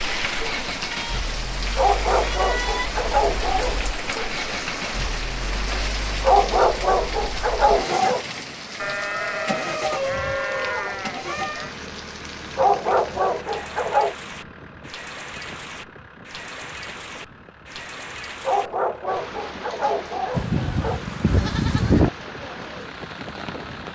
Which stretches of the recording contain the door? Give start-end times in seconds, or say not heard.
not heard.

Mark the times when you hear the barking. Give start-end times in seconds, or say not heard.
1.8-4.3, 6.2-8.2, 12.6-14.2, 18.4-21.0.